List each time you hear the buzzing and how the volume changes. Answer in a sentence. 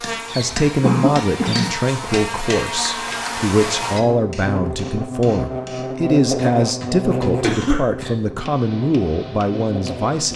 You can hear the buzzing from 0.0 to 10.3 s, getting louder then quieter.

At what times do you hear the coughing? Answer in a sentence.
The coughing can be heard from 0.2 to 1.7 s and from 7.4 to 8.1 s.